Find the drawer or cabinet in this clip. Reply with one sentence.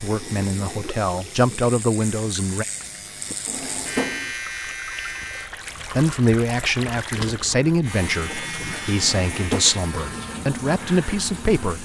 The drawer or cabinet can be heard from 3.5 to 4.3 s and from 9.0 to 9.7 s.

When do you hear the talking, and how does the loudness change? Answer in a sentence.
You can hear the talking briefly from 0.0 to 2.6 s; and from 5.9 to 11.8 s, at a steady volume.